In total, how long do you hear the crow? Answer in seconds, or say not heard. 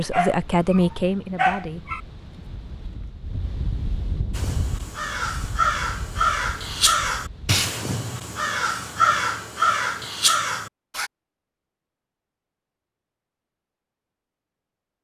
7 s.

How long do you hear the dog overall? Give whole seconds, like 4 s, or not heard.
2 s.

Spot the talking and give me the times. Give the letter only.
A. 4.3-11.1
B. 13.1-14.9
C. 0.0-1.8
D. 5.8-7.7
C.